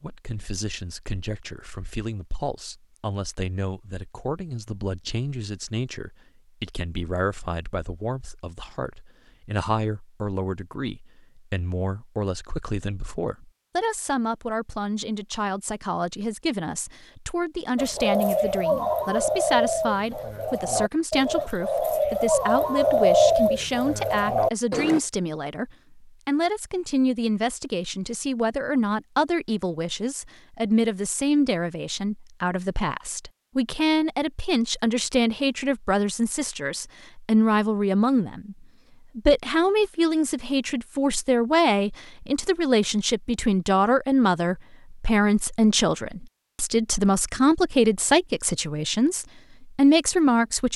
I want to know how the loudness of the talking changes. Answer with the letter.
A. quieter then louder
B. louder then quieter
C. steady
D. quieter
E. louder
E.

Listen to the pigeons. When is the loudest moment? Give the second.
23 s.